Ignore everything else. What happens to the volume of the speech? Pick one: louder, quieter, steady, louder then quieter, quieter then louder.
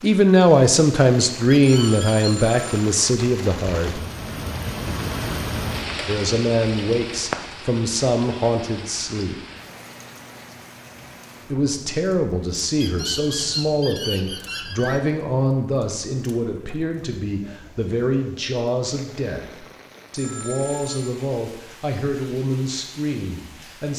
quieter.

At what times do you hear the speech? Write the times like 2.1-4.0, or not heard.
0.0-4.0, 6.0-9.3, 11.5-23.9.